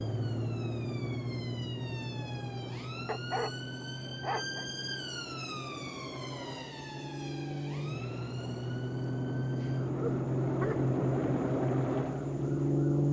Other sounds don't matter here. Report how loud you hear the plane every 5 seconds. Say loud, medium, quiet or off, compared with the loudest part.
medium, medium, loud.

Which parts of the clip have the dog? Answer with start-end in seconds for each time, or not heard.
3.0-4.7, 9.4-10.9.